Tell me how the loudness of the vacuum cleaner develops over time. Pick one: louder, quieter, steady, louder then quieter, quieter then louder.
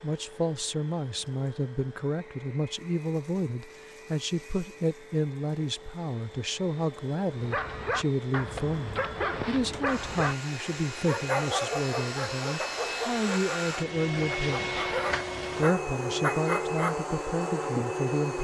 louder.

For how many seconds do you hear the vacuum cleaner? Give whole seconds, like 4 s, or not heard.
18 s.